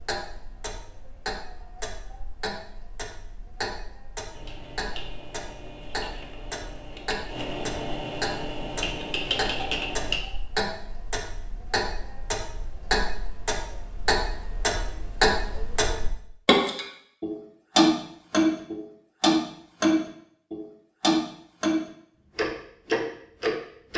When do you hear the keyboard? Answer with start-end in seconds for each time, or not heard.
4.3-10.2.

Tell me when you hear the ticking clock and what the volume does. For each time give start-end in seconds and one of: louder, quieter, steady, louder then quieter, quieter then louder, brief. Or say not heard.
0.0-23.9 louder.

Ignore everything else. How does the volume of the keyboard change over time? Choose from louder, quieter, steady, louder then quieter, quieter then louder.
louder.